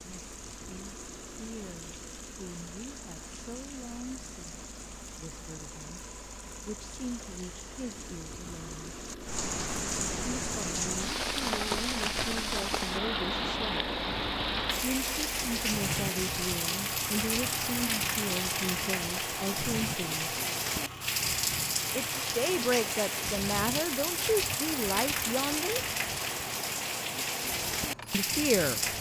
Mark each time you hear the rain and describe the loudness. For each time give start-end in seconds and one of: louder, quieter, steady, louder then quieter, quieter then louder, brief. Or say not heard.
0.0-28.9 louder.